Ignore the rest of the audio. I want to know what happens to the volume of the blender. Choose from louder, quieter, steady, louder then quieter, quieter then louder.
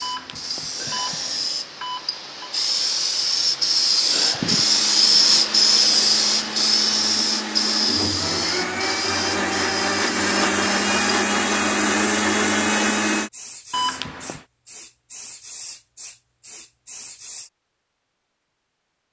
louder.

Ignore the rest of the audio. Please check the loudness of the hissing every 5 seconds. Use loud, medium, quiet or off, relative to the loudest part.
loud, loud, quiet, quiet.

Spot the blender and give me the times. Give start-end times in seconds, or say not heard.
4.4-13.3.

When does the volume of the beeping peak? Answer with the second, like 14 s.
14 s.